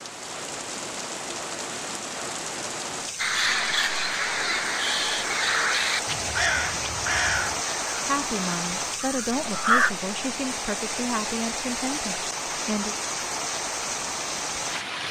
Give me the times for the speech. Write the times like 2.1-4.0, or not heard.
8.1-12.9.